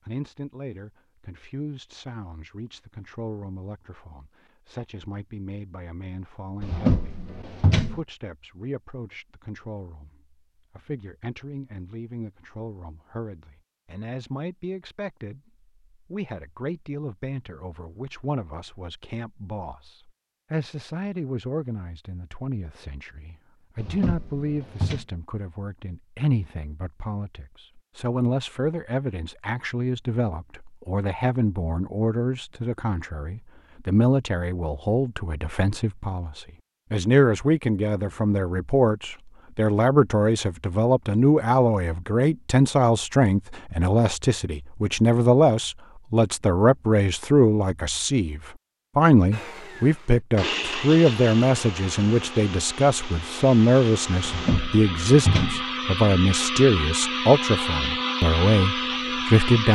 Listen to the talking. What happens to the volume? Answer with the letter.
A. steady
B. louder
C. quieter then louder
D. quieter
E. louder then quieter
B.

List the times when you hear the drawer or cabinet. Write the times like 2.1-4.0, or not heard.
6.6-8.0, 23.8-25.1, 54.2-55.6.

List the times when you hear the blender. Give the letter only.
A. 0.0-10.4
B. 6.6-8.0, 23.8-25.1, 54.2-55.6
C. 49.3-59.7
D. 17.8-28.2
C.